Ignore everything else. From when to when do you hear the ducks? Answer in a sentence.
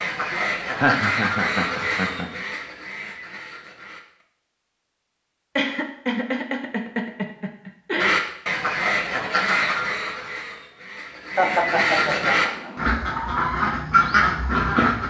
The ducks can be heard from 0.0 to 4.2 s and from 8.0 to 15.0 s.